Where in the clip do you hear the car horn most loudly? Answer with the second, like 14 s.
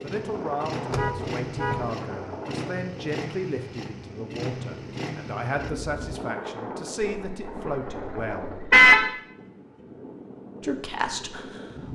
9 s.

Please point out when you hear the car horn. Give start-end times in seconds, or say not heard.
0.9-1.9, 7.0-9.1.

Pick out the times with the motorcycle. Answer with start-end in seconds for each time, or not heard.
0.0-6.2.